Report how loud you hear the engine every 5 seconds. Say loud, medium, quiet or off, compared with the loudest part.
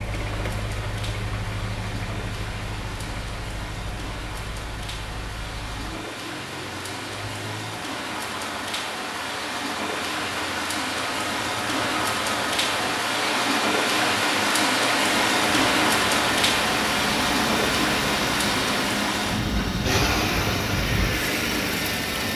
medium, quiet, medium, loud, loud.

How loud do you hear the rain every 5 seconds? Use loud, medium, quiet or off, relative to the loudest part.
quiet, medium, loud, loud, medium.